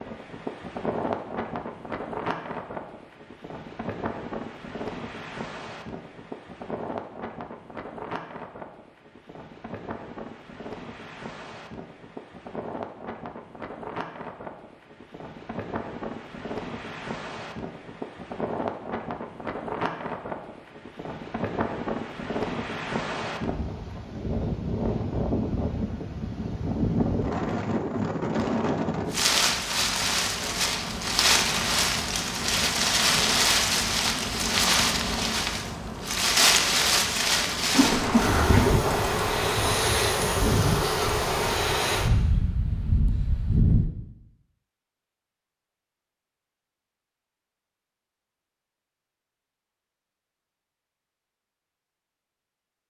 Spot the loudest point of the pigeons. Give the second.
38 s.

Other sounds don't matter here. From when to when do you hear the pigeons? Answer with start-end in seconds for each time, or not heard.
37.7-39.8.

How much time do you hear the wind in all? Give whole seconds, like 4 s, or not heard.
44 s.